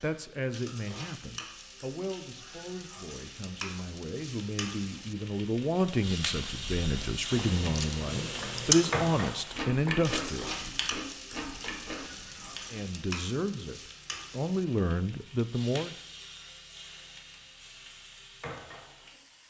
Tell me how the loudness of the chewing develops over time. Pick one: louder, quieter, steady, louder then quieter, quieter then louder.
louder then quieter.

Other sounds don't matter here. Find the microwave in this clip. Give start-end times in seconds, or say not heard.
not heard.